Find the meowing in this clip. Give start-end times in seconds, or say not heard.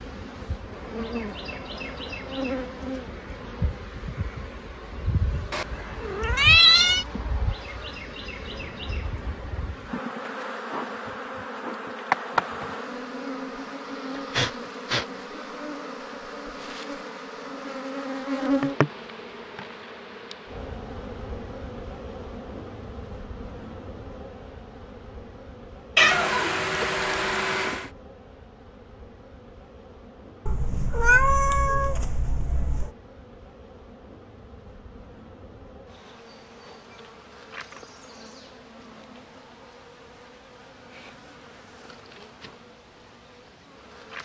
5.5-7.0, 25.9-27.9, 30.4-32.9.